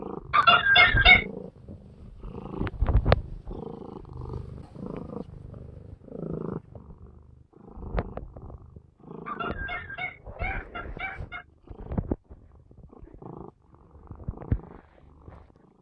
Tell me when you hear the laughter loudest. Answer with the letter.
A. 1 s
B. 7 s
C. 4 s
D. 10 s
A.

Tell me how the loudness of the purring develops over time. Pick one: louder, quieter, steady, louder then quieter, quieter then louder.
quieter.